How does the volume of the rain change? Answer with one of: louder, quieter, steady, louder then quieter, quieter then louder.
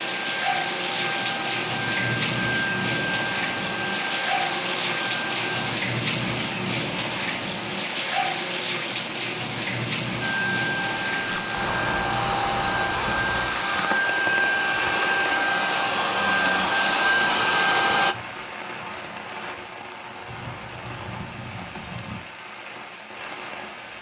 quieter.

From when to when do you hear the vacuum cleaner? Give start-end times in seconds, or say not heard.
0.0-5.8, 10.2-18.1.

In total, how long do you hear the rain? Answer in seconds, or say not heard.
24 s.